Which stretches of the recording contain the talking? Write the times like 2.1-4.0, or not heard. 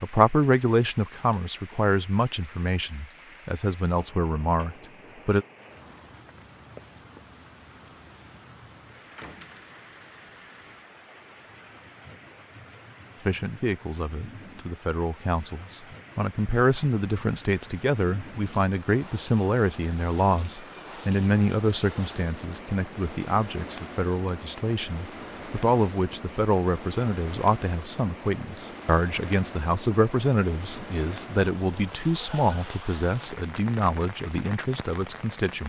0.0-5.5, 13.2-35.6.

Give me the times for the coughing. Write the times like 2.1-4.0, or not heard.
not heard.